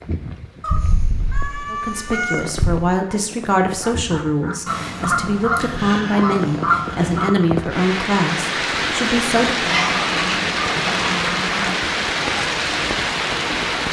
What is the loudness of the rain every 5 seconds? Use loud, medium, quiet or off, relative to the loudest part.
quiet, loud, loud.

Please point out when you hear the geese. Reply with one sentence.
The geese can be heard from 0.6 to 2.9 s, from 4.7 to 7.3 s and from 9.7 to 11.8 s.